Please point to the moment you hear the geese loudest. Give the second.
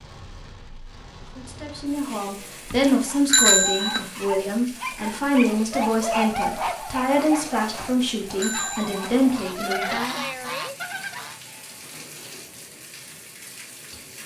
10 s.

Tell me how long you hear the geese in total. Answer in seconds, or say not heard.
2 s.